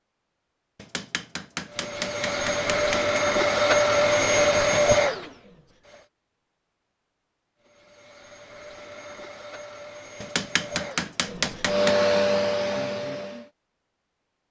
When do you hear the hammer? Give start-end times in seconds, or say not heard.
0.8-3.1, 10.2-11.9.